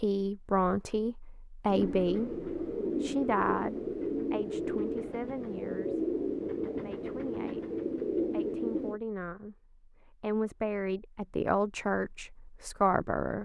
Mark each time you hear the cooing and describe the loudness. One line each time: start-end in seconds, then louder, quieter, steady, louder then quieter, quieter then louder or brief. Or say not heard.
1.6-9.0 steady.